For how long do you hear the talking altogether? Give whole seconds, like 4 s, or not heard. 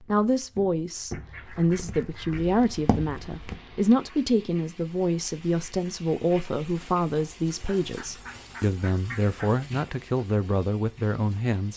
12 s.